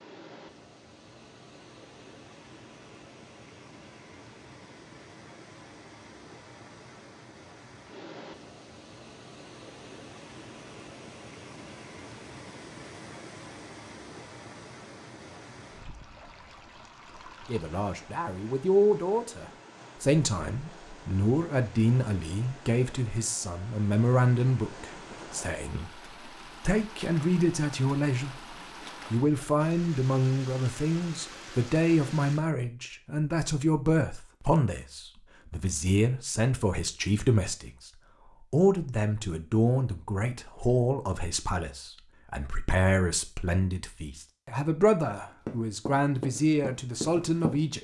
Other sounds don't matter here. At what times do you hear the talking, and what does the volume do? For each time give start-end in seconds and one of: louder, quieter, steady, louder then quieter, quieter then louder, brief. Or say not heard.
17.4-47.7 steady.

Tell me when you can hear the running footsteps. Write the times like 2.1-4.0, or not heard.
45.5-47.6.